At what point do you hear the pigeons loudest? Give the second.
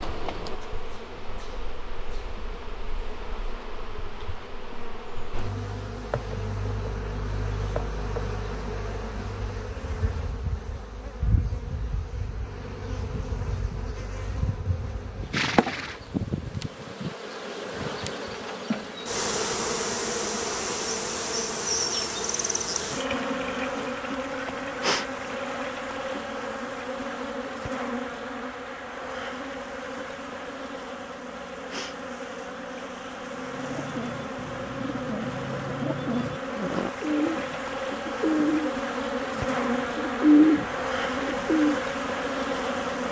40 s.